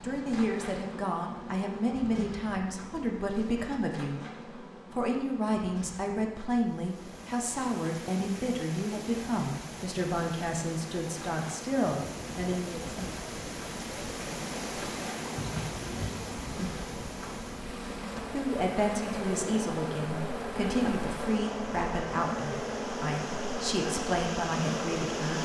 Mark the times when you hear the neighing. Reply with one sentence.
You can hear the neighing from 15.3 to 16.2 s.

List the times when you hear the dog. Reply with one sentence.
The dog can't be heard in this clip.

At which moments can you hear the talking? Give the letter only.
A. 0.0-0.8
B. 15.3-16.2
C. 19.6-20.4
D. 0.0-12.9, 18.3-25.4
D.